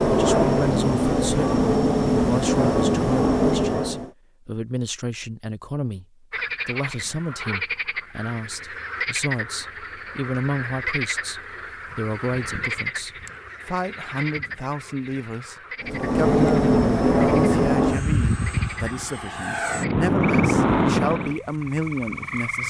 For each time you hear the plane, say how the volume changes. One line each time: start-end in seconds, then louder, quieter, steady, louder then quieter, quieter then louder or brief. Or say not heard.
0.0-4.1 steady
15.8-21.4 quieter then louder.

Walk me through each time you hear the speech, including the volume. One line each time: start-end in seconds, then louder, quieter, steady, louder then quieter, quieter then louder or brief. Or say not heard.
0.1-22.6 steady.